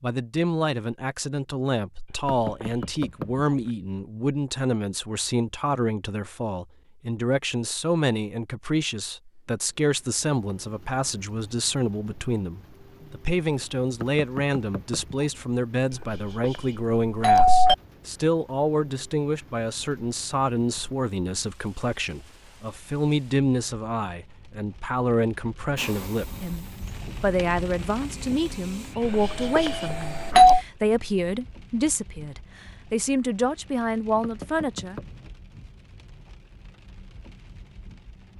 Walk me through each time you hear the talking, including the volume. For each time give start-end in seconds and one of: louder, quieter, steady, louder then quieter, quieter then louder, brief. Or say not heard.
0.0-35.0 steady.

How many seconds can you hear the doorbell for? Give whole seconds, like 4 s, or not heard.
4 s.